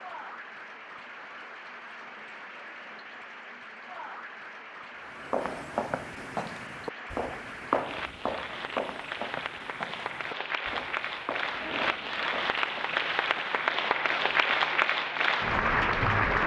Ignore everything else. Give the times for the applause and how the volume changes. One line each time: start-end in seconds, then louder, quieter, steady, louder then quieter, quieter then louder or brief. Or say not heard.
0.0-16.4 louder.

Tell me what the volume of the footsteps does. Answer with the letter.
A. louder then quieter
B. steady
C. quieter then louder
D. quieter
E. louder
D.